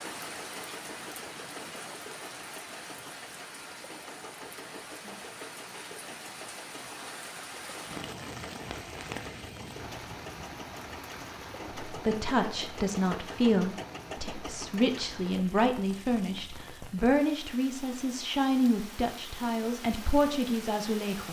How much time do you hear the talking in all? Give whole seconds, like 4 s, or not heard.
9 s.